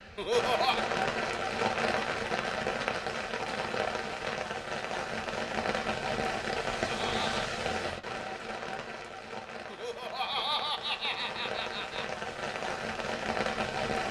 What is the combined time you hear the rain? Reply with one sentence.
The rain can be heard for 14 seconds in total.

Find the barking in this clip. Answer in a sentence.
The barking can't be heard in this clip.